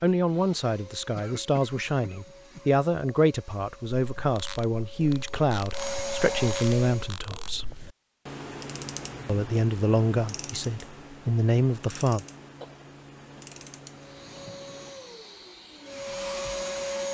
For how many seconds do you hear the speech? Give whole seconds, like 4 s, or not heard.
11 s.